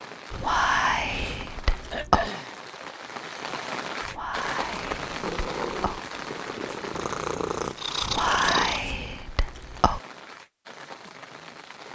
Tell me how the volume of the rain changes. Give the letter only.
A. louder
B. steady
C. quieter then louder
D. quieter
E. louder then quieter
D.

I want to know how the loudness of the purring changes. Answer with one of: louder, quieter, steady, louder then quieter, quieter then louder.
quieter then louder.